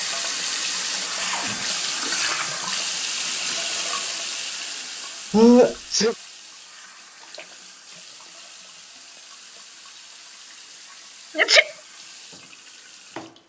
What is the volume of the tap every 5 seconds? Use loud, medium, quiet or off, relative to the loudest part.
loud, quiet, quiet.